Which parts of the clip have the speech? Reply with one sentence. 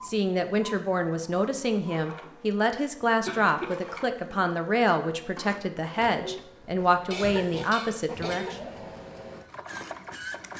The speech can be heard from 0.0 to 8.6 s.